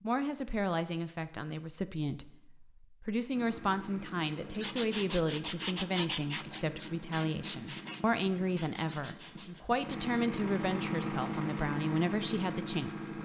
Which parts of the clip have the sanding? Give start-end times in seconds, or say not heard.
4.5-9.7.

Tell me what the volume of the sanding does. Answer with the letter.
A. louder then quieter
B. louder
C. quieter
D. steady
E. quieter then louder
C.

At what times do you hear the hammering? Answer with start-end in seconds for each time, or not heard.
not heard.